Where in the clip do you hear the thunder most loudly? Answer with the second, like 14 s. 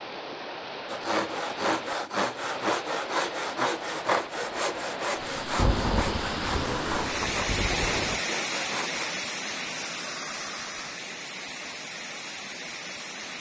6 s.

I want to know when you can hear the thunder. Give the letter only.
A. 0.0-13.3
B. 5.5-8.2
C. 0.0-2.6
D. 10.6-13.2
B.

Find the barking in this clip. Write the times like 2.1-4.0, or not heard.
not heard.